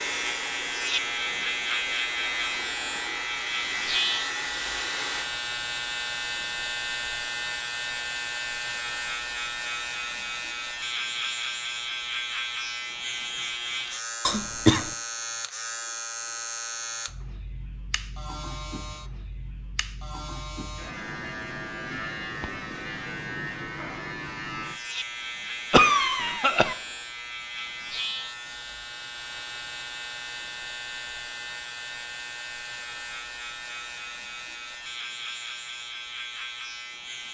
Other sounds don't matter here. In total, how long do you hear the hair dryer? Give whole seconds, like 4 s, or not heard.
5 s.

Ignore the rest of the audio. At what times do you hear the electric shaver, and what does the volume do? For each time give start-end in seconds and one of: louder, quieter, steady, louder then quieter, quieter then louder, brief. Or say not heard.
0.0-37.2 quieter.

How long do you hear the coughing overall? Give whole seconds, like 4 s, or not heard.
2 s.